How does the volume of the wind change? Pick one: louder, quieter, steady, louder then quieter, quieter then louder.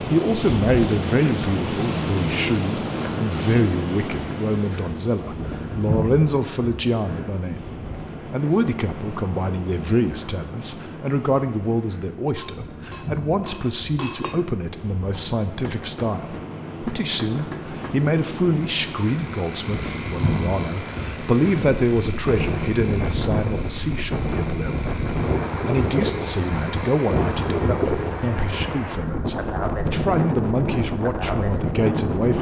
quieter then louder.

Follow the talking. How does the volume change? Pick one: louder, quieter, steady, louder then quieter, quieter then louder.
steady.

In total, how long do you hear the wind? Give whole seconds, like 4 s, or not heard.
32 s.